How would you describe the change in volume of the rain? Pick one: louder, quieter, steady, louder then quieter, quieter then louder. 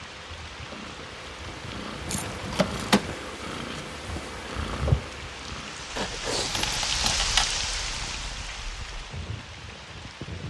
louder then quieter.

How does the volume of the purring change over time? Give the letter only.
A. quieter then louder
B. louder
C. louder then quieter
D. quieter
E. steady
C.